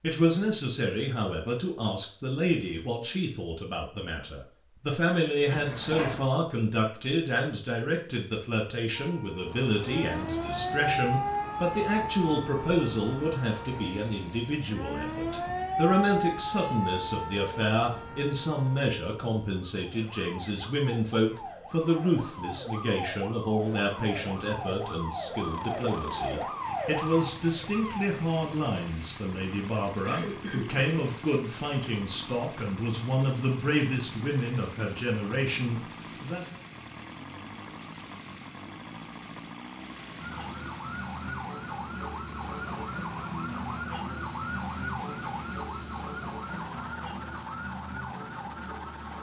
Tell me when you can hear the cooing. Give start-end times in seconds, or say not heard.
not heard.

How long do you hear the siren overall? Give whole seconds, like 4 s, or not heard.
28 s.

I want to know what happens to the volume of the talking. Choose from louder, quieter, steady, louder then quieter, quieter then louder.
steady.